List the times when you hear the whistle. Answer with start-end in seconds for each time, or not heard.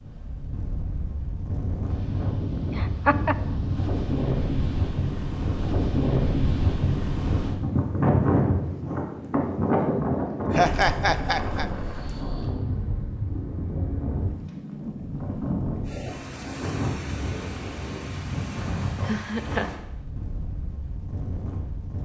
not heard.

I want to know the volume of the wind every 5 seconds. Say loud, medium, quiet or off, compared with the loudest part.
medium, loud, medium, medium, quiet.